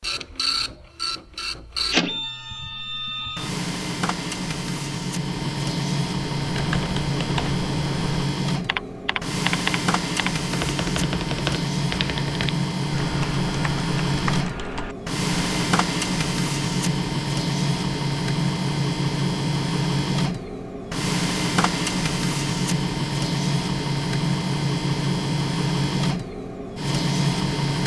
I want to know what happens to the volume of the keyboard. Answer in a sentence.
The volume of the keyboard goes up, then down.